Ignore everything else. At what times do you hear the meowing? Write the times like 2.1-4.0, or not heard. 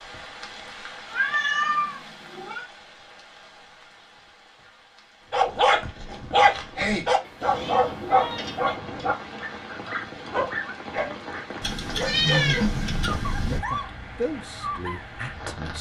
1.1-2.6, 7.2-8.8, 11.6-13.6.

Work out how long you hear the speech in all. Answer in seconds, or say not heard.
2 s.